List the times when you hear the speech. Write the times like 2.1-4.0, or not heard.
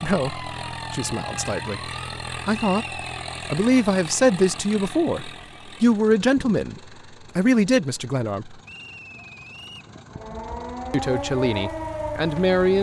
0.0-1.8, 2.5-6.8, 7.3-8.6, 10.9-12.7.